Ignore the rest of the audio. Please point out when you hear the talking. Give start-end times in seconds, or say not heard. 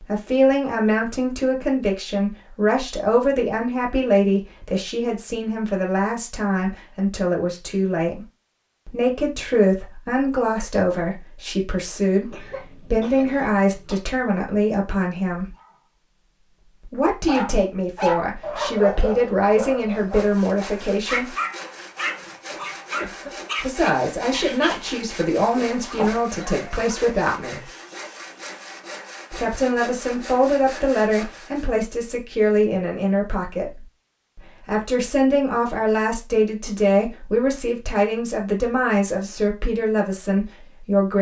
0.0-8.2, 8.8-15.6, 16.8-21.4, 23.6-27.7, 29.3-41.1.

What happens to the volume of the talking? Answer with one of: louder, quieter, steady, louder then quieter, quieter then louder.
steady.